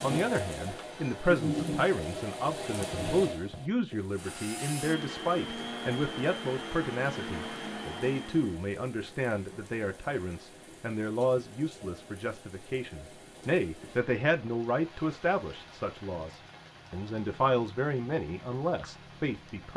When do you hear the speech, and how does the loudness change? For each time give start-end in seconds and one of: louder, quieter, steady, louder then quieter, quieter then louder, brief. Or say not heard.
0.0-19.7 steady.